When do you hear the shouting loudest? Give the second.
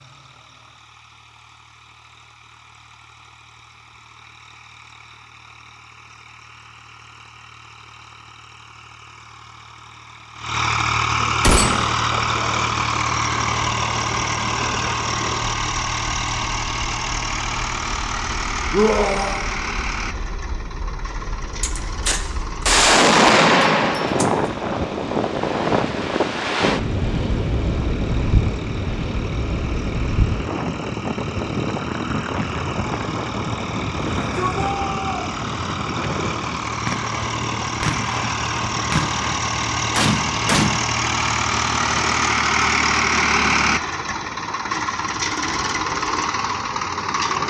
19 s.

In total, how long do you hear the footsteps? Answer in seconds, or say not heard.
not heard.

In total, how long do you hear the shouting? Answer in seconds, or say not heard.
2 s.